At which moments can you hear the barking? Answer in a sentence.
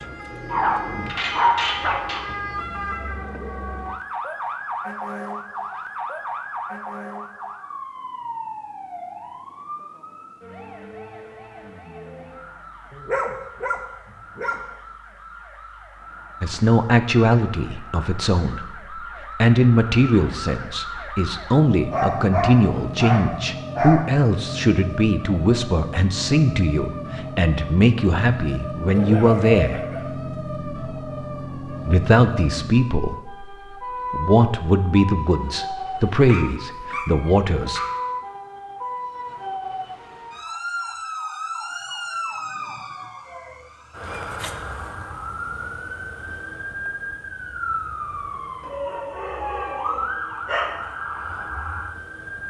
The barking can be heard from 0.5 to 2.2 s, from 12.9 to 14.6 s, from 21.9 to 24.1 s, from 28.9 to 30.1 s, from 36.2 to 37.9 s and from 48.6 to 50.8 s.